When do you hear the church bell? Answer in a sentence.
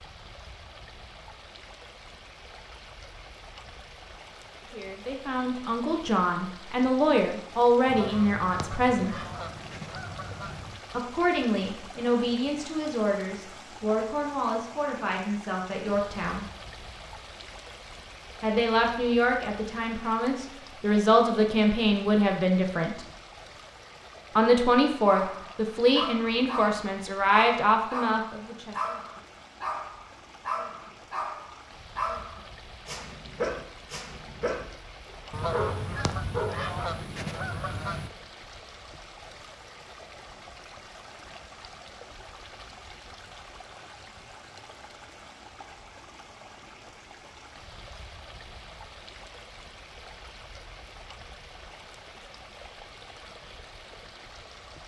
You can't hear the church bell here.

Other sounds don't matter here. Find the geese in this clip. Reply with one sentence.
You can hear the geese from 7.8 to 10.8 s and from 35.3 to 38.1 s.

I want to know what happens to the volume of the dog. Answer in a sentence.
The volume of the dog stays about the same.